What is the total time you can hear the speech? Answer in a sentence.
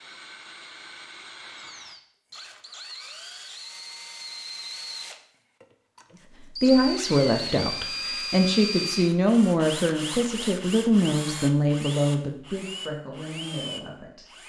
You can hear the speech for 8 seconds altogether.